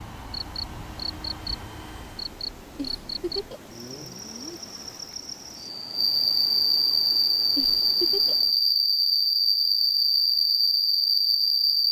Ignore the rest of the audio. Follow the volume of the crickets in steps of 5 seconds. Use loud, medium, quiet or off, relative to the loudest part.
quiet, loud, loud.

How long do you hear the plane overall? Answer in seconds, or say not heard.
2 s.